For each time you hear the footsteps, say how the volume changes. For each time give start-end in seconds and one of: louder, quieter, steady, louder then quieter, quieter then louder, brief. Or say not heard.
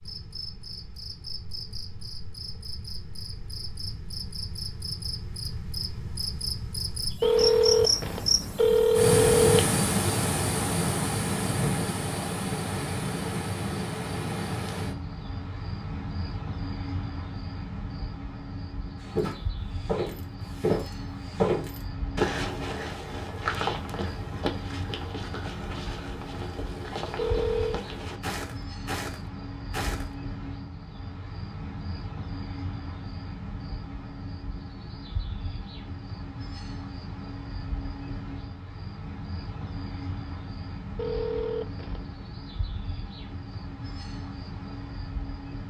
19.0-30.1 quieter.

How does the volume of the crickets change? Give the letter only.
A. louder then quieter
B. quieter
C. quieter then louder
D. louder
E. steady
B.